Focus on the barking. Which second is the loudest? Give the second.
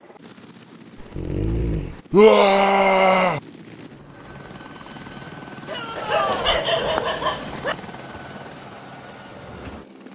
7 s.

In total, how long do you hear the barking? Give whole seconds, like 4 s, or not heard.
3 s.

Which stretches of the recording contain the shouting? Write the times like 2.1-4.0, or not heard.
2.1-3.4, 5.7-6.5.